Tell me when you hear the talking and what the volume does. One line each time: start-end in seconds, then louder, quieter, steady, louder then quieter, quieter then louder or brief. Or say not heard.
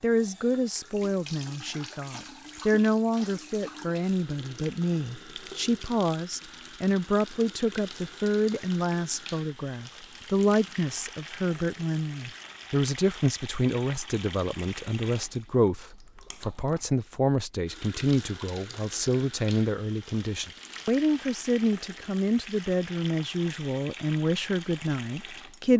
0.0-25.7 steady.